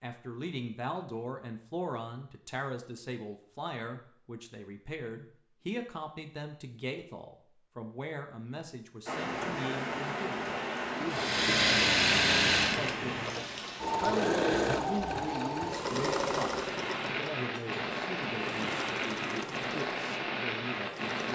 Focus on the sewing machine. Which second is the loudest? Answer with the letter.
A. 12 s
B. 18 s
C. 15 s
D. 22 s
A.